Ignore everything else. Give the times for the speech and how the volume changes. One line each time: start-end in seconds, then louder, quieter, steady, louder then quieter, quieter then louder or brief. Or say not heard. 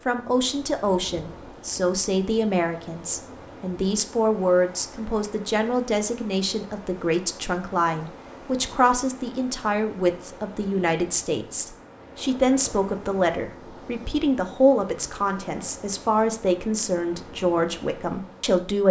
0.1-18.8 steady.